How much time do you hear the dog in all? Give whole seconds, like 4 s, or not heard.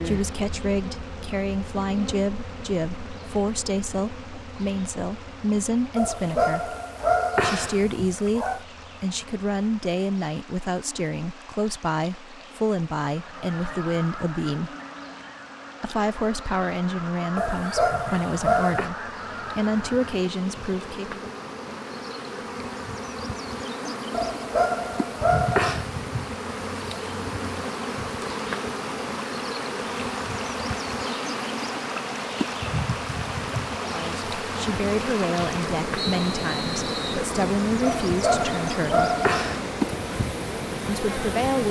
8 s.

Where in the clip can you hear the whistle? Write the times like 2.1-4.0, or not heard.
36.0-37.1.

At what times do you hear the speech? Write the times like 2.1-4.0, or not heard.
0.0-6.8, 7.4-14.8, 15.8-21.2, 33.8-39.1, 40.9-41.6.